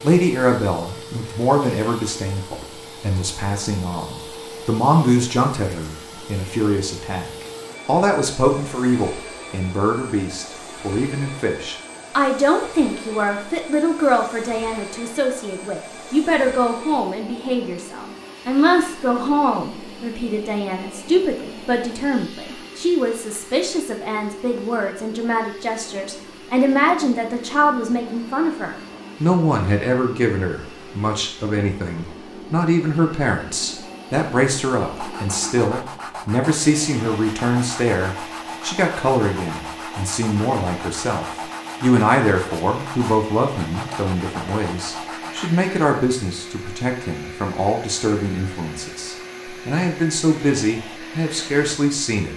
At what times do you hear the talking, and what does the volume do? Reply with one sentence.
You can hear the talking from 0.0 to 52.3 s, at a steady volume.